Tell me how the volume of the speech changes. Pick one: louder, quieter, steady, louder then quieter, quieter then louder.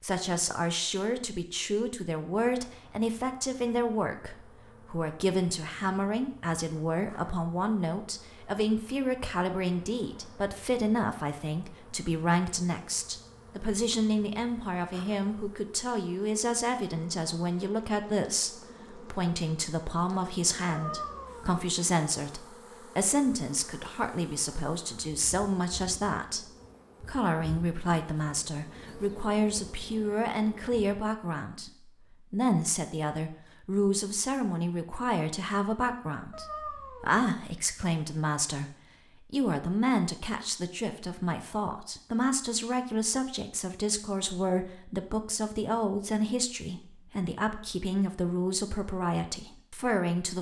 steady.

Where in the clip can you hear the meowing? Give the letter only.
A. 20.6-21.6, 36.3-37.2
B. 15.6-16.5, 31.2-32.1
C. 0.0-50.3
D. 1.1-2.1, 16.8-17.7
A.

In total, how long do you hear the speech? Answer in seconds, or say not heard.
50 s.